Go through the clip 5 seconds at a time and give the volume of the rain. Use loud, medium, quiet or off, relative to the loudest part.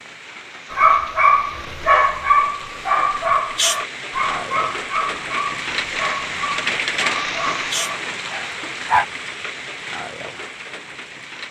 medium, loud, medium.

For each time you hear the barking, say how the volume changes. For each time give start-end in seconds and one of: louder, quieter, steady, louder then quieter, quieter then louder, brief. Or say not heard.
0.7-9.1 quieter.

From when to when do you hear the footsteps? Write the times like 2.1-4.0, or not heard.
not heard.